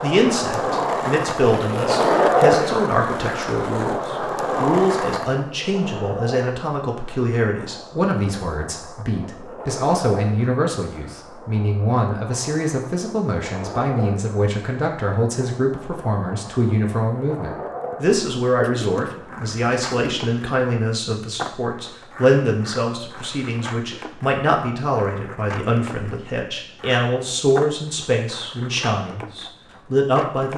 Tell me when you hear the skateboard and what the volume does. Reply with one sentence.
You can hear the skateboard from 0.0 to 30.5 s, getting quieter.